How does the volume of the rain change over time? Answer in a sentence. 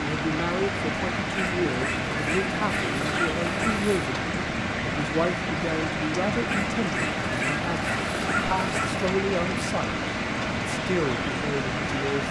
The volume of the rain stays about the same.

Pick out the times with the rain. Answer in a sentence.
The rain can be heard from 0.0 to 12.2 s.